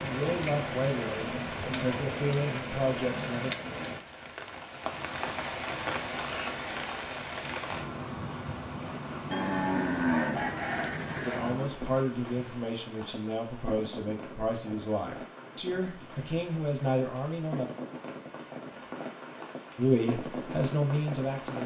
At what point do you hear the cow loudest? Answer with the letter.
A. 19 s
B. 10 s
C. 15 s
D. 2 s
B.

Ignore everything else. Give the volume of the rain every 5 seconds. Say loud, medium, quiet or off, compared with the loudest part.
loud, loud, medium, medium, loud.